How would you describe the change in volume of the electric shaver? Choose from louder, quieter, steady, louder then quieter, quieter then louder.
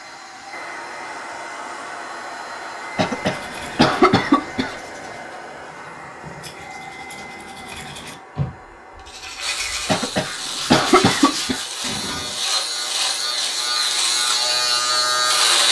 louder.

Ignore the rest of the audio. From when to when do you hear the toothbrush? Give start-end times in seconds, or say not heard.
3.2-12.4.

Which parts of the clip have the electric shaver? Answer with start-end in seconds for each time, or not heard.
9.4-15.6.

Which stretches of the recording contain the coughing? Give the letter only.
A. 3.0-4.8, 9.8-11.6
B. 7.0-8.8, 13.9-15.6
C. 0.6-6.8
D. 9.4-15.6
A.